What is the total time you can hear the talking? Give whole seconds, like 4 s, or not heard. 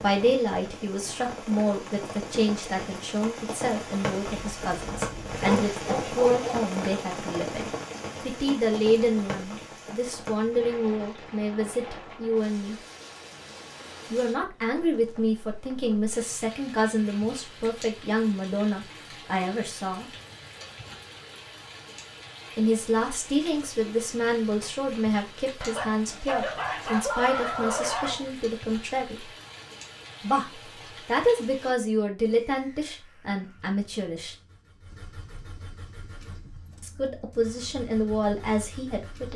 32 s.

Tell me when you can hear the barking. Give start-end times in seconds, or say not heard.
4.3-6.6, 25.6-28.3.